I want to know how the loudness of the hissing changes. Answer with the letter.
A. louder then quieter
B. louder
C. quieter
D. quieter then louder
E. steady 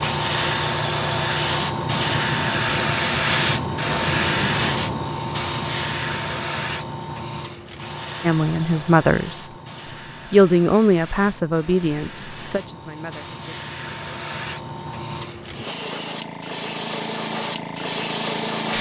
D.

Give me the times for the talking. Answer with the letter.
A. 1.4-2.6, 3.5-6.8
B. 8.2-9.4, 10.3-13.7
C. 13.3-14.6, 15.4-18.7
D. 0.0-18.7
B.